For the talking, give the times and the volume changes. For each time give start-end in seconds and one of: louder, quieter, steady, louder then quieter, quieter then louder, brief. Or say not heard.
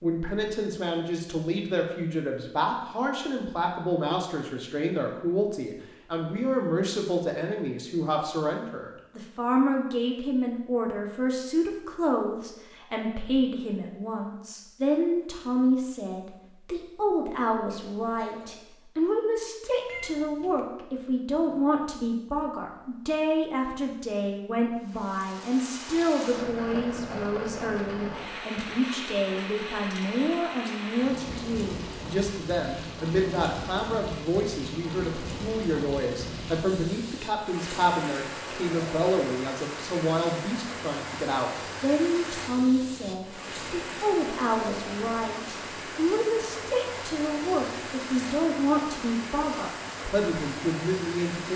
0.0-51.5 steady.